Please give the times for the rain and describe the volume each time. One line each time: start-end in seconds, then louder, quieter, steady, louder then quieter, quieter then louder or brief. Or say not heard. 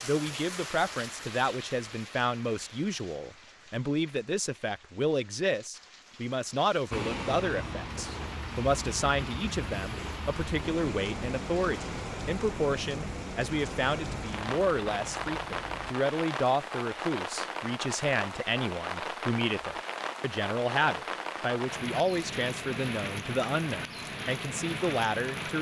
0.0-25.5 louder.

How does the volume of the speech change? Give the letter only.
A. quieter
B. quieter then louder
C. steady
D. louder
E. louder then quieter
C.